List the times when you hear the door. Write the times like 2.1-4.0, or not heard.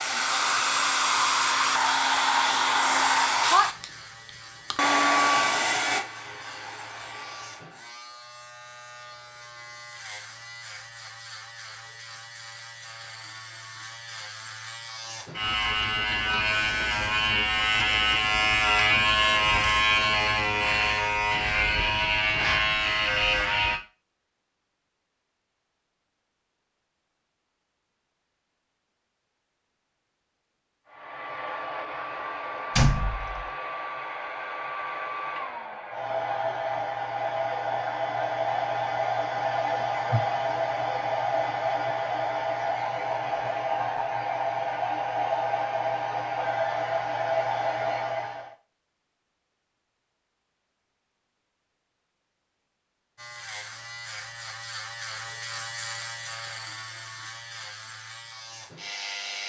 32.8-33.5.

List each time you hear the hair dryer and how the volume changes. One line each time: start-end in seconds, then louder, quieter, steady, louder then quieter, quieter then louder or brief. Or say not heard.
0.0-7.8 quieter
30.9-48.5 louder.